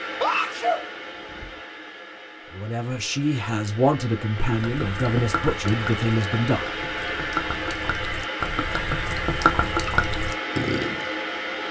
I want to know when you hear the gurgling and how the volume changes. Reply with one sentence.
The gurgling can be heard from 4.4 to 11.1 s, getting quieter then louder.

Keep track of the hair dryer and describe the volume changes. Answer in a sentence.
The volume of the hair dryer goes up.